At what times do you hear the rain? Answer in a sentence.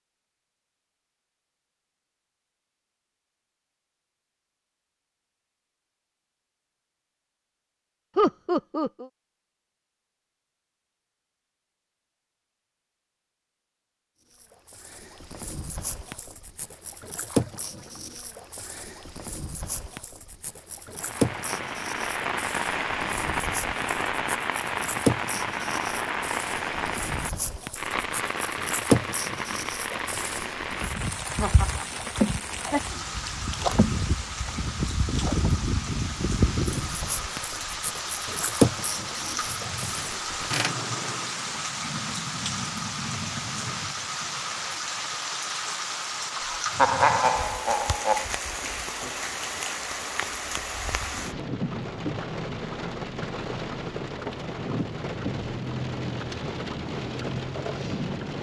The rain can be heard from 20.9 to 58.3 s.